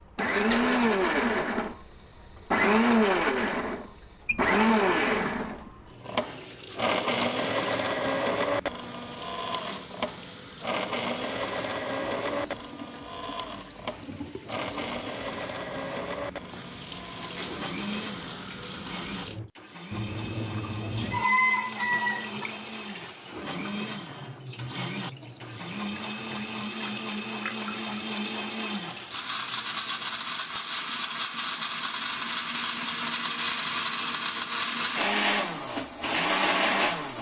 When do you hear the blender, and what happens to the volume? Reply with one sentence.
The blender can be heard from 0.1 to 37.1 s, getting quieter then louder.